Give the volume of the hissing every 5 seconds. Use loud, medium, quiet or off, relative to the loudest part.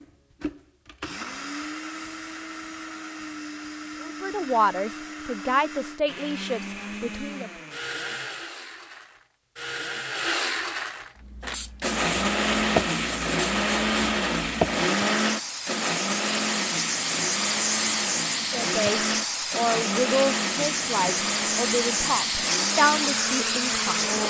off, off, loud, loud, loud.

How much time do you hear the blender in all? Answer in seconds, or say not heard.
24 s.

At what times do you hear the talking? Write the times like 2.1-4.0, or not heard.
4.0-7.5, 18.5-24.1.